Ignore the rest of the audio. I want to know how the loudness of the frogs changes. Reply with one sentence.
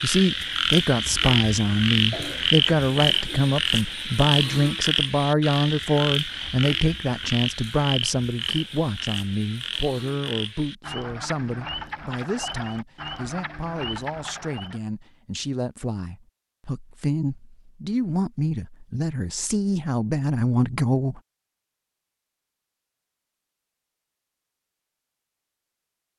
The volume of the frogs goes down.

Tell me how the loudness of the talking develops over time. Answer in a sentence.
The loudness of the talking goes down, then up.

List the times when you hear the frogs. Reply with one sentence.
The frogs can be heard from 0.0 to 14.8 s.